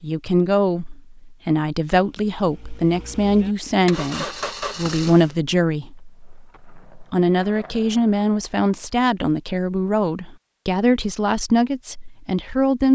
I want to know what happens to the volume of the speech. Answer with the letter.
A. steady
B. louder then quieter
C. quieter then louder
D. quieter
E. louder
A.